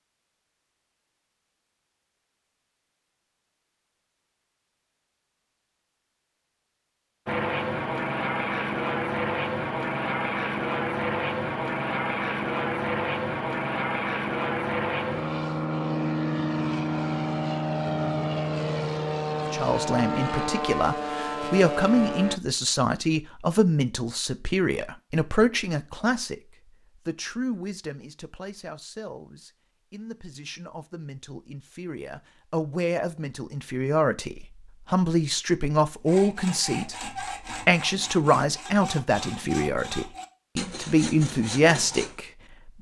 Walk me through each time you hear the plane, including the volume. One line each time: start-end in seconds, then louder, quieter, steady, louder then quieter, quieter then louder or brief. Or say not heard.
7.2-22.4 steady.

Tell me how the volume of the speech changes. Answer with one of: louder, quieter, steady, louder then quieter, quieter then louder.
quieter then louder.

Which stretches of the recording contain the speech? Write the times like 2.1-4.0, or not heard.
19.4-26.4, 27.1-42.7.